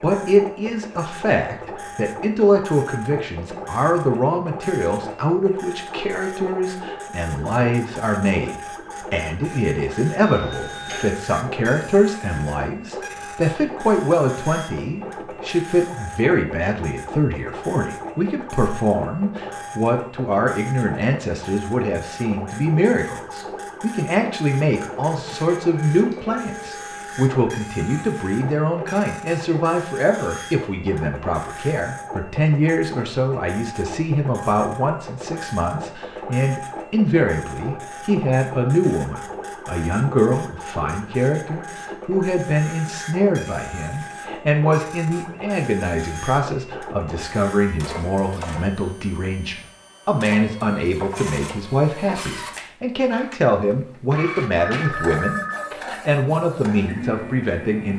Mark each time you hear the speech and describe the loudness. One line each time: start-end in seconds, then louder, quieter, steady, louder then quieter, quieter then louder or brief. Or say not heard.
0.0-57.9 steady.